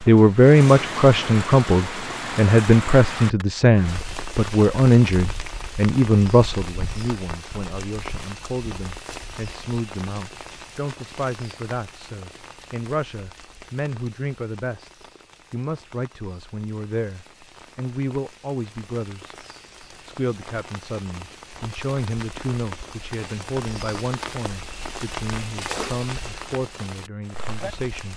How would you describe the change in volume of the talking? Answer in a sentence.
The volume of the talking goes down.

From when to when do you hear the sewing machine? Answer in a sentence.
The sewing machine can't be heard in this clip.